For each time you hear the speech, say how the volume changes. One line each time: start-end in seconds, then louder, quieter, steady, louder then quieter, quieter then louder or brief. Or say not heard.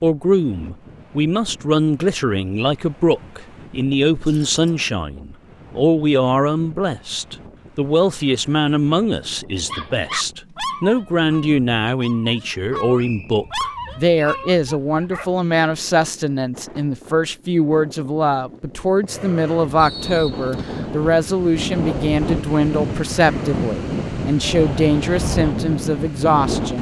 0.0-26.7 steady.